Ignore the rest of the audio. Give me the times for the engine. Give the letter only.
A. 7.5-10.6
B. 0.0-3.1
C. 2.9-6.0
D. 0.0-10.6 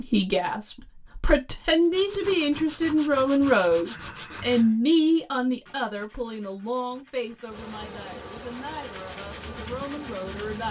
A.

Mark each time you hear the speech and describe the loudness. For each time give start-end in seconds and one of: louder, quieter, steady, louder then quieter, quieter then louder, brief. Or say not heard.
0.0-10.6 quieter.